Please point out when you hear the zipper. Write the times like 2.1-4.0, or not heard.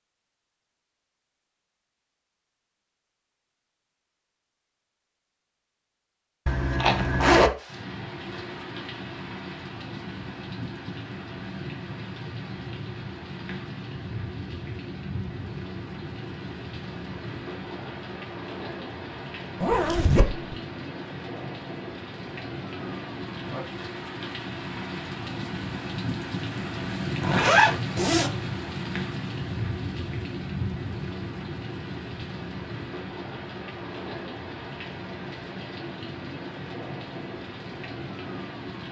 6.5-7.5, 19.6-20.6, 27.2-28.3.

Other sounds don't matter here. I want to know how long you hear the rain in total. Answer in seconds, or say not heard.
31 s.